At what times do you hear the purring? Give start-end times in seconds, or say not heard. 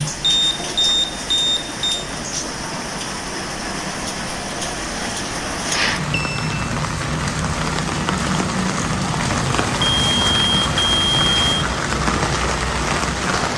not heard.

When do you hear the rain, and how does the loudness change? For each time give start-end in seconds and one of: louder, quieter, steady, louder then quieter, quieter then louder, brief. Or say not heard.
0.0-13.5 louder.